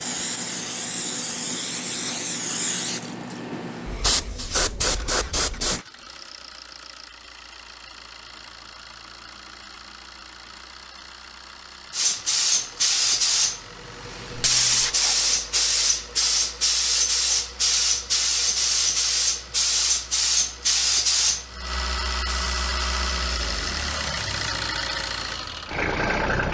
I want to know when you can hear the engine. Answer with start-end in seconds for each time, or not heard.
0.0-26.4.